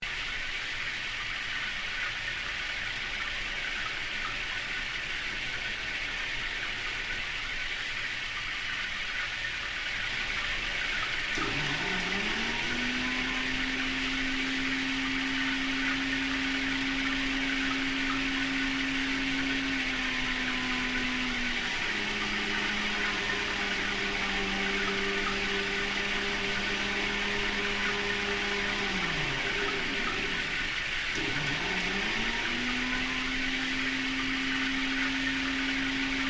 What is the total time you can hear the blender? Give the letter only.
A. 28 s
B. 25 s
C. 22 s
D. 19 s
B.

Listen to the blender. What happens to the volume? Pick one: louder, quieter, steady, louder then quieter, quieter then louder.
steady.